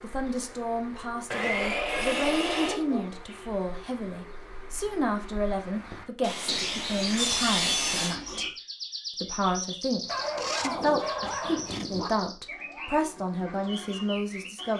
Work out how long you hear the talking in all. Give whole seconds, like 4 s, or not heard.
14 s.